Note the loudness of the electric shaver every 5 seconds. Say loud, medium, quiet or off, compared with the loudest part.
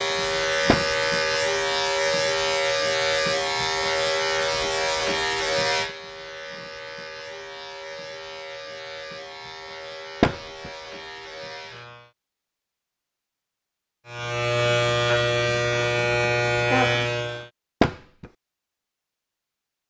loud, medium, medium, loud.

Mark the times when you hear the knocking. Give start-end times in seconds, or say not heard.
0.7-1.1, 10.2-10.7, 17.8-18.2.